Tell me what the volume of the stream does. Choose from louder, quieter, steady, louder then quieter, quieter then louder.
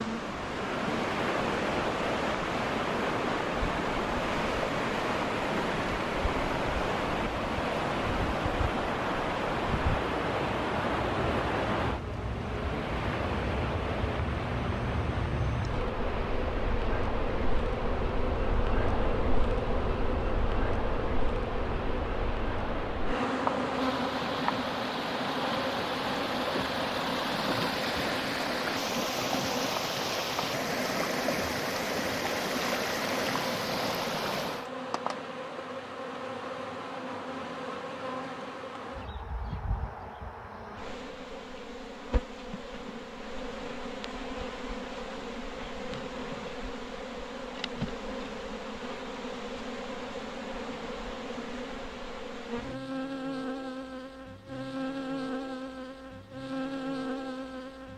quieter then louder.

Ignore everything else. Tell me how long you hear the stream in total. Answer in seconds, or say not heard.
35 s.